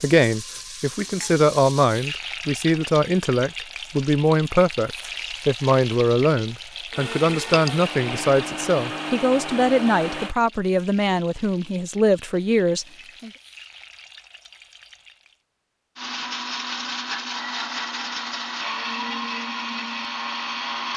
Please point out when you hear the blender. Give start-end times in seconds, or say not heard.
6.9-10.3, 15.9-20.9.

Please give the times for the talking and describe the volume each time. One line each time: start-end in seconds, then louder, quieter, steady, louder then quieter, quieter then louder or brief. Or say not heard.
0.0-13.3 steady.